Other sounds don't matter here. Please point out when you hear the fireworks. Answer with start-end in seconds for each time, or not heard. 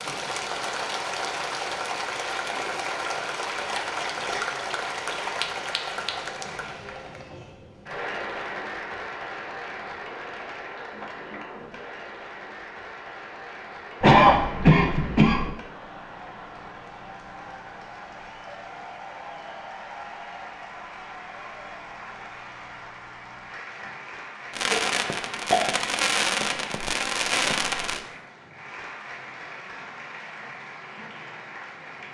24.5-28.0.